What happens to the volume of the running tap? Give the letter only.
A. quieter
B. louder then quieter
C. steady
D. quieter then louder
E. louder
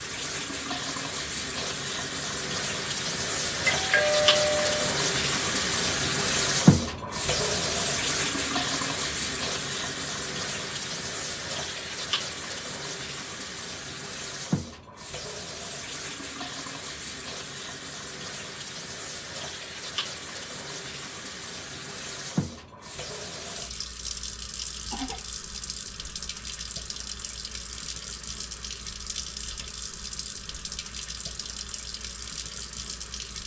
A.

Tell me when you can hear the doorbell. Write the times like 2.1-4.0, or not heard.
3.6-4.8.